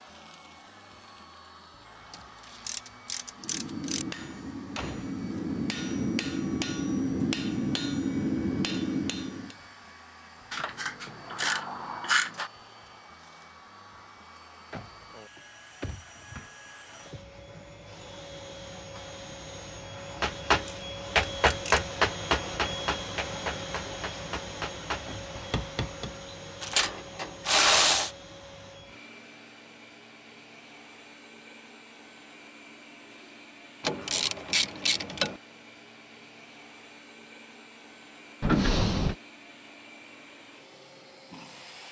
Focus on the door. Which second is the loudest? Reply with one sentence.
The volume of the door peaks at 39 seconds.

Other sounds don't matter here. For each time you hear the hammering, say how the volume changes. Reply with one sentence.
The hammering can be heard from 3.4 to 9.6 s, getting louder; and from 20.2 to 26.1 s, getting quieter.